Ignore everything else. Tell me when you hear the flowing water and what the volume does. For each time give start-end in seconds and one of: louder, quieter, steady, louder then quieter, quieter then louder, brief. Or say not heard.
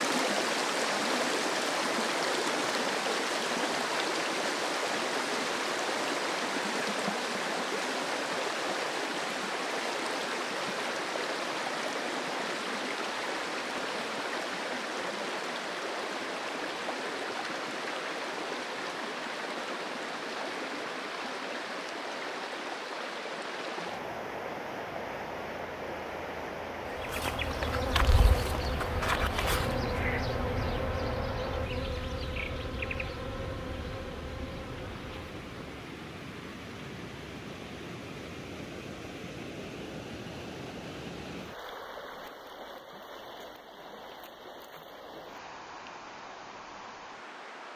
0.0-47.7 quieter.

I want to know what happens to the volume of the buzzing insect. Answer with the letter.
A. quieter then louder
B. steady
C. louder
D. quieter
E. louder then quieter
D.